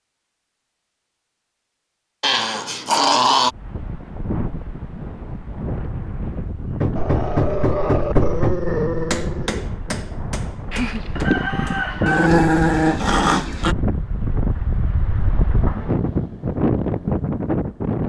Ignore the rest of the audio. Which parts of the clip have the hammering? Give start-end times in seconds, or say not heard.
6.8-11.9.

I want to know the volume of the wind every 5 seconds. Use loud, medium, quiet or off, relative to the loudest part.
medium, medium, medium, loud.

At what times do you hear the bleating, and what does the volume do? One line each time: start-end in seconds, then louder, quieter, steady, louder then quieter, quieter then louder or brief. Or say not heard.
not heard.